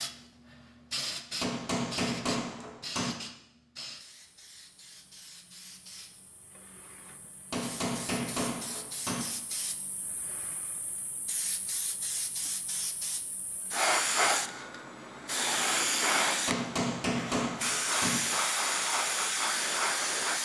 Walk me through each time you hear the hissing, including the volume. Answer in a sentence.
The hissing can be heard from 0.0 to 20.4 s, getting quieter then louder.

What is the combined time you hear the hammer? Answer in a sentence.
The hammer can be heard for 5 seconds in total.